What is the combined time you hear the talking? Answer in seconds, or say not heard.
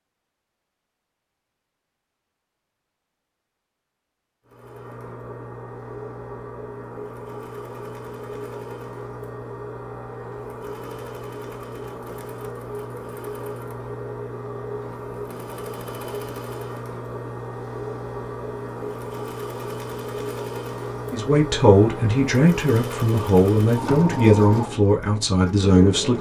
5 s.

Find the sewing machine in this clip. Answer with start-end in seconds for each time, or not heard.
4.5-26.1.